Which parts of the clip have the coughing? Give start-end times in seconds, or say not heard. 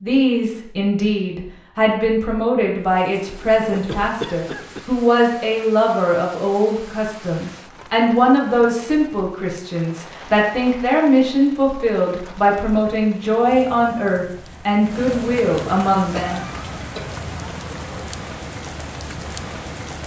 3.7-4.8, 16.1-17.2.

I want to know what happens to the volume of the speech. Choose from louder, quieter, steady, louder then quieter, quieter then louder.
steady.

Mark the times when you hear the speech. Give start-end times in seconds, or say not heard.
0.0-16.4.